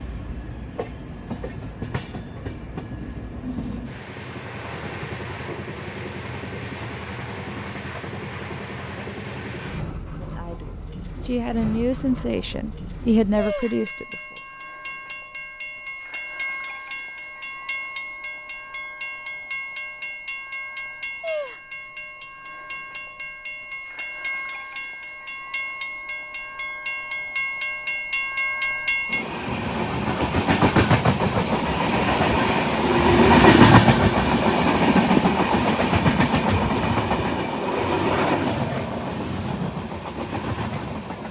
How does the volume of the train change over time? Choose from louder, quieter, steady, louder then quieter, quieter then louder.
louder.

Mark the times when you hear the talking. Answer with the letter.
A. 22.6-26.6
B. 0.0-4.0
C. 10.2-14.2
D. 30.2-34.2
C.